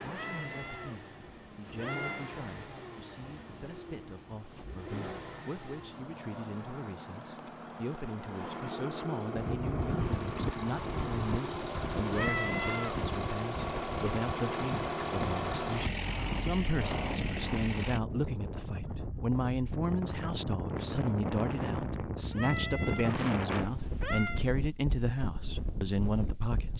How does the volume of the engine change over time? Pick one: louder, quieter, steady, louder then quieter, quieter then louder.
louder.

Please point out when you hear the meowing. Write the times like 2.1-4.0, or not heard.
0.1-2.3, 12.1-13.0, 22.2-24.4.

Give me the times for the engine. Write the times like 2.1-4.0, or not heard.
0.0-18.0.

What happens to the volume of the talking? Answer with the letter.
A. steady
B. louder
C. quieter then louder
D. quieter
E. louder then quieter
B.